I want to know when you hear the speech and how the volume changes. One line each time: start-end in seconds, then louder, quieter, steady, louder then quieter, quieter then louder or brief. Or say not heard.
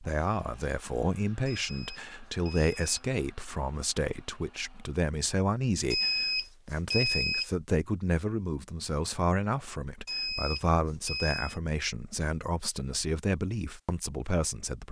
0.0-14.8 steady.